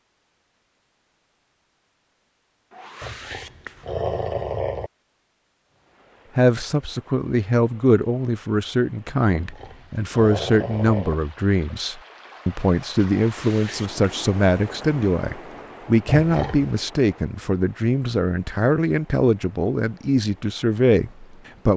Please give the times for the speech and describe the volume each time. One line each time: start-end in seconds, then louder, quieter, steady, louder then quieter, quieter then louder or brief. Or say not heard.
6.3-21.7 steady.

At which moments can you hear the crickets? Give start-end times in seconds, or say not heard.
not heard.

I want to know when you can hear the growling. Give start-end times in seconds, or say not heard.
3.0-4.9, 9.3-11.2, 16.1-16.8.